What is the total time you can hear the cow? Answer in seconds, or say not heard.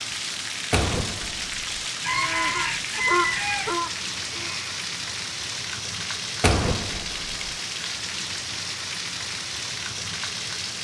3 s.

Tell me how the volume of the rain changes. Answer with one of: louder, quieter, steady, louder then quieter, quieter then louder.
steady.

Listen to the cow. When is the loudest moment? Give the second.
3 s.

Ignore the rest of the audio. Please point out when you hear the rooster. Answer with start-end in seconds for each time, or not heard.
2.0-3.8.